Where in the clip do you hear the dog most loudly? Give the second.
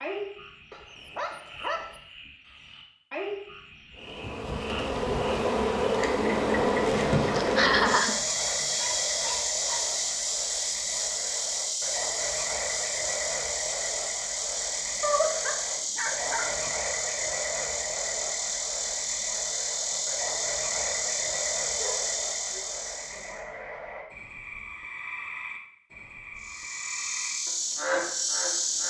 15 s.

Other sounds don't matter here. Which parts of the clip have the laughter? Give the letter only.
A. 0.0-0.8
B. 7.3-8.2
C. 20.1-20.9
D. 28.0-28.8
B.